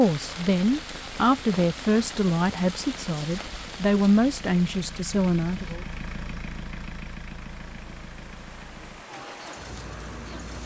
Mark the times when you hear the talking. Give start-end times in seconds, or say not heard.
0.0-5.8.